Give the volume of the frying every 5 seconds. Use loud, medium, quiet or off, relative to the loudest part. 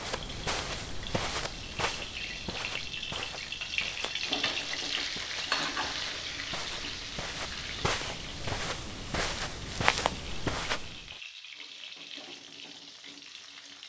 loud, loud, medium.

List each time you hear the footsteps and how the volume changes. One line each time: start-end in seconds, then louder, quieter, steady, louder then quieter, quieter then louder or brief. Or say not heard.
0.0-11.2 quieter then louder.